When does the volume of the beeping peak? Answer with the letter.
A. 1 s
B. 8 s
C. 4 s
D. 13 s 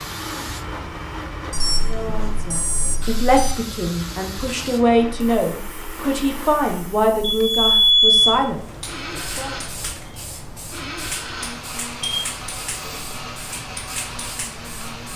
B.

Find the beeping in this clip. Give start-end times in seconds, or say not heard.
1.5-3.5, 7.2-8.3, 12.0-13.2.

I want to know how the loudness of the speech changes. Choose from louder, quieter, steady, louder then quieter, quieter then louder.
steady.